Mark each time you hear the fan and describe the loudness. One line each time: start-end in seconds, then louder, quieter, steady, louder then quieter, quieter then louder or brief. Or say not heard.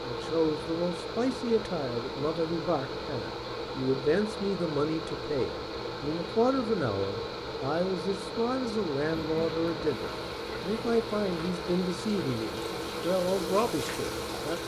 0.0-14.6 steady.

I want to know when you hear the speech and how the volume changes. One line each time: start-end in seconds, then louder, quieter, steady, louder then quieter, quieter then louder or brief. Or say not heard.
0.0-14.6 steady.